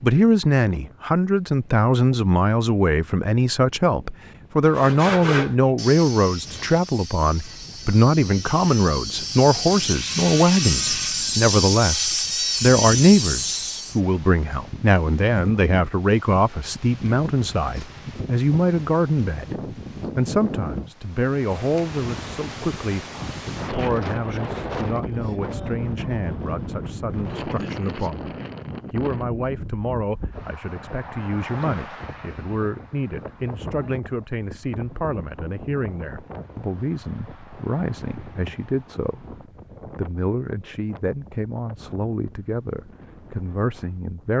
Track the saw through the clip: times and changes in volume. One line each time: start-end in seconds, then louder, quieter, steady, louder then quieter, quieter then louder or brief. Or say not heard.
4.7-14.0 quieter then louder.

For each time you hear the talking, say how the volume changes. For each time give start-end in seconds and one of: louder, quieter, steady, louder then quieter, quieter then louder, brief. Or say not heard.
0.0-44.3 quieter.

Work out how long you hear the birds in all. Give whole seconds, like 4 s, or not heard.
not heard.